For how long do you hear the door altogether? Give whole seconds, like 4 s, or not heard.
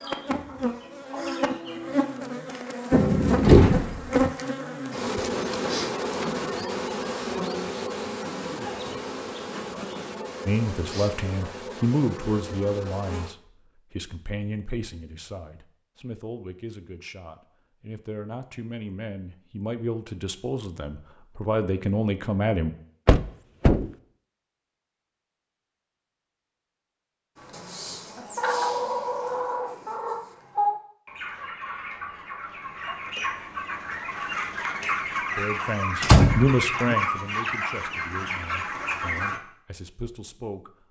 3 s.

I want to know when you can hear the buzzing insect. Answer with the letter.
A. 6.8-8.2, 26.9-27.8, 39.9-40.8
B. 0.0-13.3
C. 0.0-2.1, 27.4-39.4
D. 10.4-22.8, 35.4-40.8
B.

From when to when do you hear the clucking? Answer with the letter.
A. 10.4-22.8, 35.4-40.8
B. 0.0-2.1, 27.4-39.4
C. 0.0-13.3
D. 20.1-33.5
B.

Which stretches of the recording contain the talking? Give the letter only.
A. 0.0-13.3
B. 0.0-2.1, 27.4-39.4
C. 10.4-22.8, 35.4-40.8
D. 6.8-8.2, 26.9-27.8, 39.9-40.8
C.